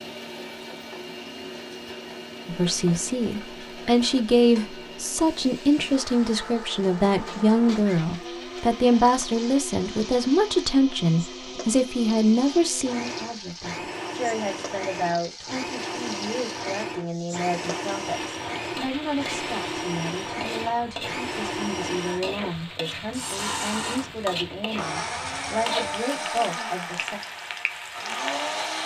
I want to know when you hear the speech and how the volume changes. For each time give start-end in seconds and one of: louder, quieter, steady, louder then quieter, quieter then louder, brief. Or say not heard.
2.5-27.2 quieter.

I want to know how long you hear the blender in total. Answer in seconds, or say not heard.
29 s.